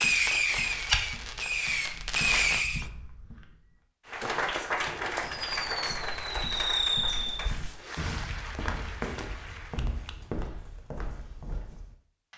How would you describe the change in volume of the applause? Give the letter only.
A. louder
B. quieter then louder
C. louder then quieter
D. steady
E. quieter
E.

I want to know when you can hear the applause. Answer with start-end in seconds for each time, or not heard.
4.0-10.2.